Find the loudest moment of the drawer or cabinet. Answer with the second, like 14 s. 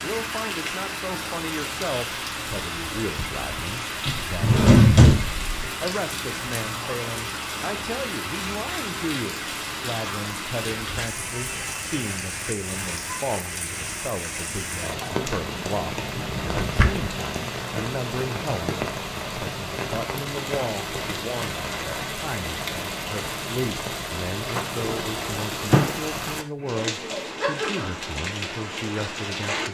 5 s.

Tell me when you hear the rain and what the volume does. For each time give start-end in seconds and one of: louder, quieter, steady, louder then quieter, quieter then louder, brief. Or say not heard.
0.0-29.6 steady.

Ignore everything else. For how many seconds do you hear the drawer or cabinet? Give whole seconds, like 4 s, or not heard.
4 s.